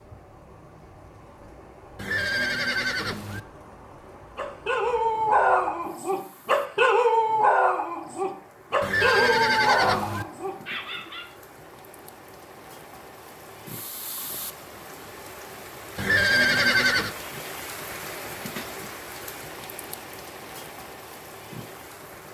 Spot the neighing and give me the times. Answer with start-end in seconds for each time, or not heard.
1.9-3.4, 8.8-10.2, 15.9-17.1.